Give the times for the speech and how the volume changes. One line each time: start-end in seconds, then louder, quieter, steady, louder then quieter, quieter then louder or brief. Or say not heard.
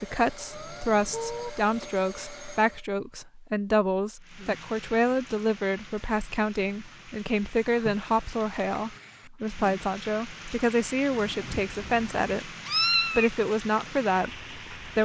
0.0-15.0 steady.